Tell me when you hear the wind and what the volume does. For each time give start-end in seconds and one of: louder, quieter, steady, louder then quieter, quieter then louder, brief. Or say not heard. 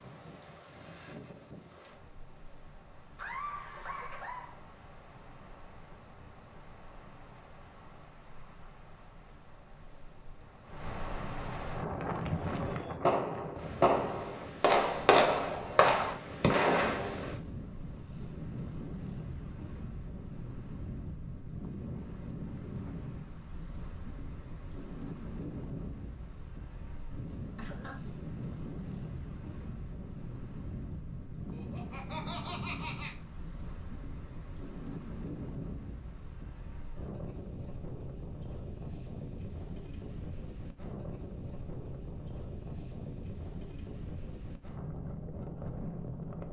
0.0-46.4 louder.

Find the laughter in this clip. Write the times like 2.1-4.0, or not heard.
3.1-4.6, 27.6-28.1, 31.5-33.1.